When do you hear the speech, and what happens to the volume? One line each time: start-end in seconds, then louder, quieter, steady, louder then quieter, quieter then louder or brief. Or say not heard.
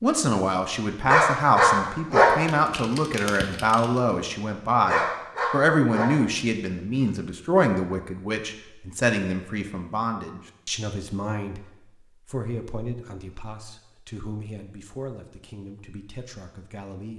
0.0-17.1 quieter.